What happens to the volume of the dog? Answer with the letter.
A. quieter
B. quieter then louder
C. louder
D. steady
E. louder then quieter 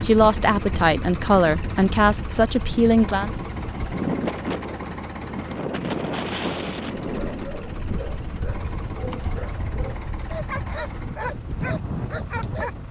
C.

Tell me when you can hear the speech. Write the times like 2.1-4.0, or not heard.
0.0-3.3.